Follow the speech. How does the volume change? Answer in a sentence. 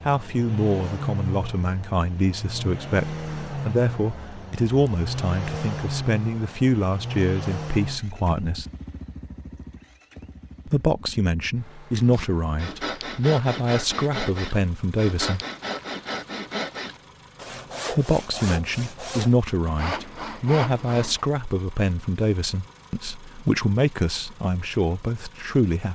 The volume of the speech stays about the same.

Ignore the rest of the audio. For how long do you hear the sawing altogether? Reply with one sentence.
The sawing can be heard for 9 seconds in total.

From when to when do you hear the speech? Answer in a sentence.
The speech can be heard from 0.1 to 8.7 s, from 10.7 to 15.4 s and from 17.9 to 25.9 s.